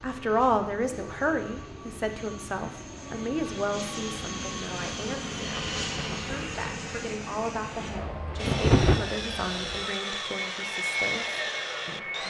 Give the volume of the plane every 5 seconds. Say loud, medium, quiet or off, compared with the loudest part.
medium, loud, loud.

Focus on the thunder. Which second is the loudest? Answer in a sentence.
The loudest moment of the thunder is at 9 seconds.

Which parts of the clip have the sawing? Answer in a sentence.
You can hear the sawing from 8.3 to 12.2 s.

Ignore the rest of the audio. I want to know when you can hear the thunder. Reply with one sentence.
The thunder can be heard from 5.5 to 9.0 s.